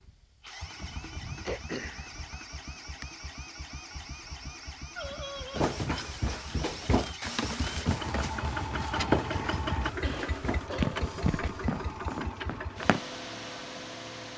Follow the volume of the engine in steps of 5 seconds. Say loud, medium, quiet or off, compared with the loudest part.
medium, loud, loud.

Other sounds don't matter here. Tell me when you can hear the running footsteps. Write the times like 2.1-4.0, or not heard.
5.6-13.0.